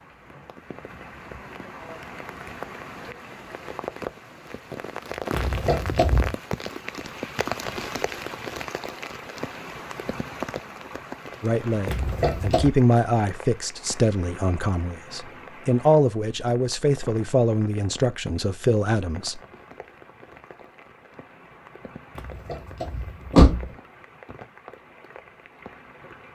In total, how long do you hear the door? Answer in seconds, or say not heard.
3 s.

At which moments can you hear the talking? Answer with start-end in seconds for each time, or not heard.
11.4-19.4.